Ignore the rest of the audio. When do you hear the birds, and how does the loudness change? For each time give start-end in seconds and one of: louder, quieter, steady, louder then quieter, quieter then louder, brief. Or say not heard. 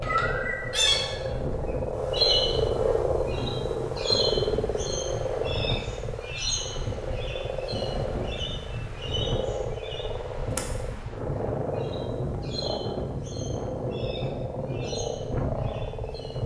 0.0-16.4 quieter.